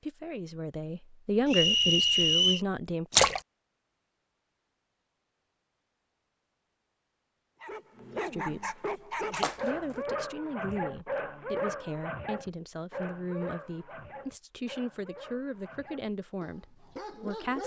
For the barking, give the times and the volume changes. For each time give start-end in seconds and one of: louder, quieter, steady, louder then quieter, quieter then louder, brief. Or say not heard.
7.6-17.6 quieter.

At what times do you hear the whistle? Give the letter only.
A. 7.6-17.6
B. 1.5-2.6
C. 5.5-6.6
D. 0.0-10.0
B.